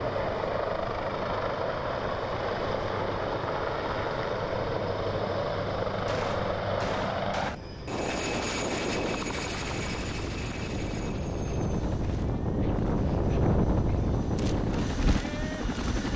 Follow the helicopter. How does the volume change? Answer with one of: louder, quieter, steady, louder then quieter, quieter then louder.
quieter.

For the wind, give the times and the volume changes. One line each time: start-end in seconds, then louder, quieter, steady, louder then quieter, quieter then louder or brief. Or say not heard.
0.0-16.1 louder.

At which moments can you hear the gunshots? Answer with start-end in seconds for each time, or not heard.
6.0-7.5.